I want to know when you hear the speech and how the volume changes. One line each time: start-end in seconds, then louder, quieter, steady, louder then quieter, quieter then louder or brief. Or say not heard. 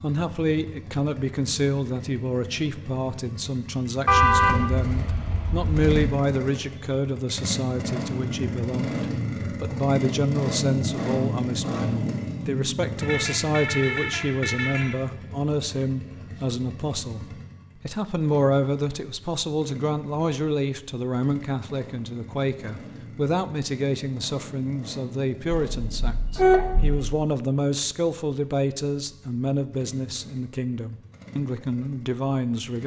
0.0-32.8 steady.